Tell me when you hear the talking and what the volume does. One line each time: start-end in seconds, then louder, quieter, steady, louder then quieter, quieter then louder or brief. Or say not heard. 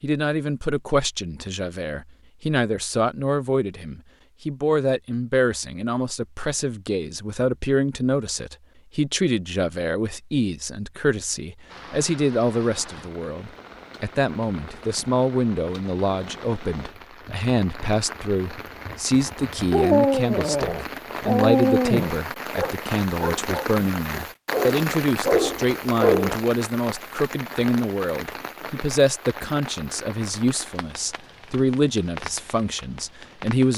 0.0-33.7 steady.